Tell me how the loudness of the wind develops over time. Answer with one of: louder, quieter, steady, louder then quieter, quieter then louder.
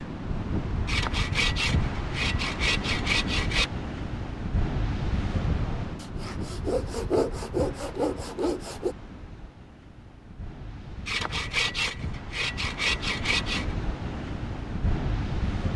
quieter then louder.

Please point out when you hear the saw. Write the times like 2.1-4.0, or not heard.
0.8-3.7, 6.0-8.9, 11.1-13.8.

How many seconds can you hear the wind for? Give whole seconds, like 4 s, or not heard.
16 s.